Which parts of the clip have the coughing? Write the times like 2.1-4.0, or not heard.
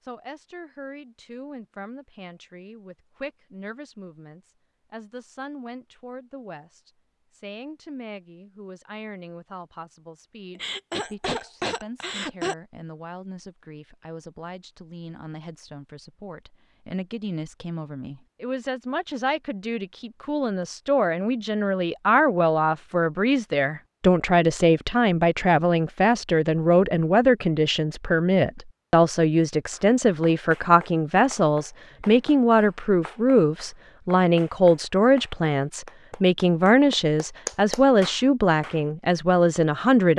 10.6-12.6.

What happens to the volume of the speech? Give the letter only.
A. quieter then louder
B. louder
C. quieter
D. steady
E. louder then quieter
B.